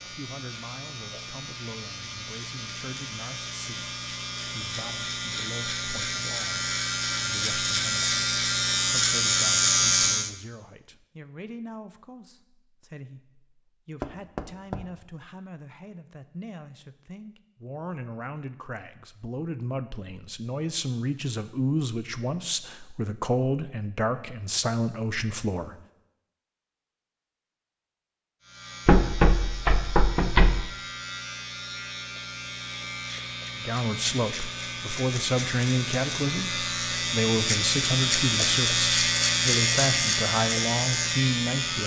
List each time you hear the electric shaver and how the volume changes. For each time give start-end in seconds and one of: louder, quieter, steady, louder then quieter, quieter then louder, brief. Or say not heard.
0.0-10.3 louder
28.4-41.8 louder.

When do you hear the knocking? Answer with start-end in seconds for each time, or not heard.
14.0-14.9, 28.9-30.6.